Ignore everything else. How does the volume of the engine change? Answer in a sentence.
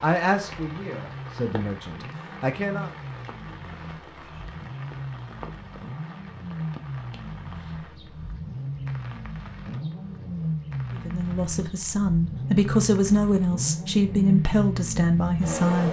The loudness of the engine goes up.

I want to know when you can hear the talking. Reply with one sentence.
The talking can be heard from 0.0 to 2.9 s and from 10.9 to 15.8 s.